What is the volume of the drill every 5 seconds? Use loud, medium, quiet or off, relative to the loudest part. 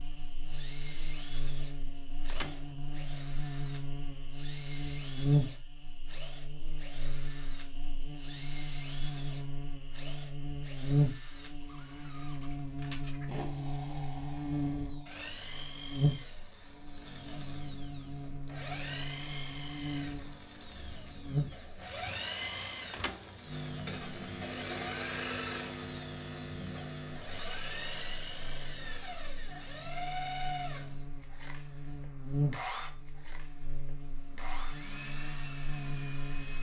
medium, medium, medium, loud, loud, loud, loud, medium.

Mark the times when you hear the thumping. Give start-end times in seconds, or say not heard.
2.2-2.7, 22.9-23.3.